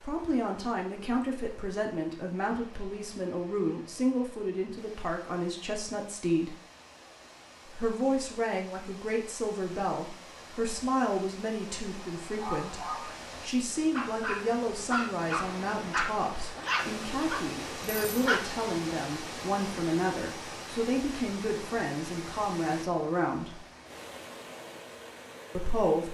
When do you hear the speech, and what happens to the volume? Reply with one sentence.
The speech can be heard from 0.0 to 6.5 s, at a steady volume; from 7.7 to 23.6 s, at a steady volume; and briefly from 25.6 to 26.0 s.